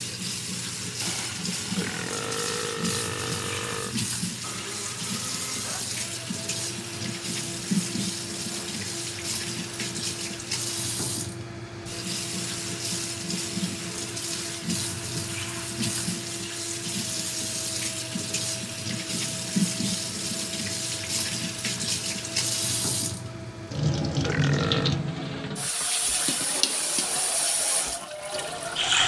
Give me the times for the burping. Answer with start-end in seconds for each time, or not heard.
1.8-4.0, 24.2-24.9.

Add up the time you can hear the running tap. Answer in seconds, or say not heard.
29 s.